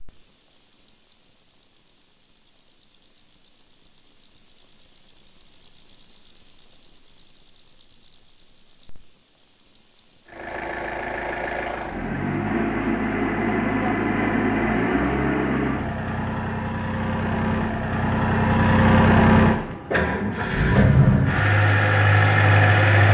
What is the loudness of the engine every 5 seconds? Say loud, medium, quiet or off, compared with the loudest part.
off, off, medium, loud, loud.